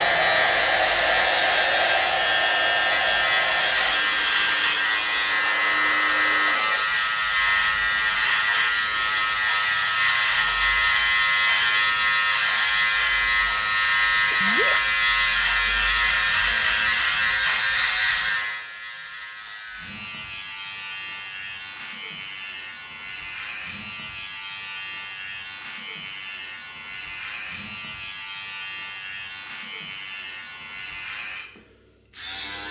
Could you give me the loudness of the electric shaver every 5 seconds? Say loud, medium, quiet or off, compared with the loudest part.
loud, loud, loud, loud, quiet, quiet, quiet.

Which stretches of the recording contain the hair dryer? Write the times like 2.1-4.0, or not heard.
0.0-6.8.